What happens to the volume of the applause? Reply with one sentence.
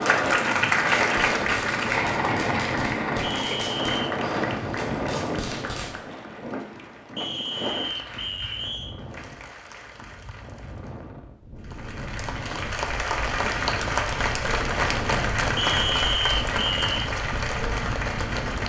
The volume of the applause goes down, then up.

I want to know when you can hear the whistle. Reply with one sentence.
The whistle can be heard from 3.2 to 4.0 s, from 7.2 to 8.9 s and from 15.6 to 16.9 s.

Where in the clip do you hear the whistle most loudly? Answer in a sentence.
The loudest moment of the whistle is at 16 seconds.